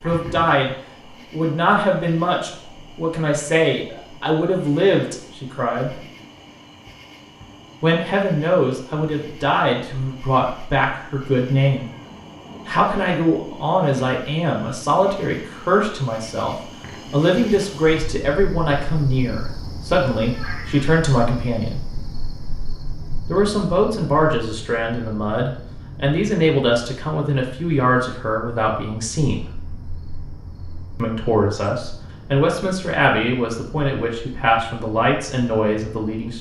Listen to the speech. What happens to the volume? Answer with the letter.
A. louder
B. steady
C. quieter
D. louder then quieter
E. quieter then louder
B.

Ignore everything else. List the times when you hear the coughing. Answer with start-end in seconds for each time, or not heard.
not heard.